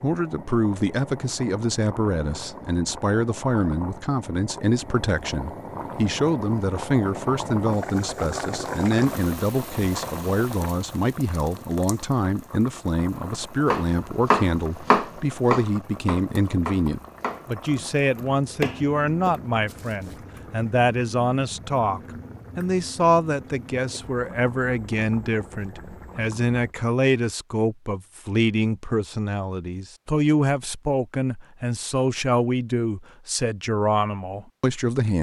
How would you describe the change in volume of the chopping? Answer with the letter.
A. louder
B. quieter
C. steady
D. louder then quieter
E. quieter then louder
E.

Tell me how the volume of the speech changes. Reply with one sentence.
The volume of the speech stays about the same.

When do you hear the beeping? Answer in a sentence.
You can't hear the beeping here.